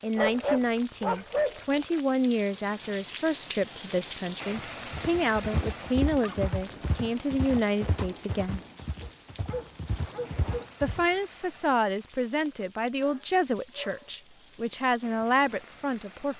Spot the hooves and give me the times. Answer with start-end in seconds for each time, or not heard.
4.9-11.1.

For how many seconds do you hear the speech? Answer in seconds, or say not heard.
14 s.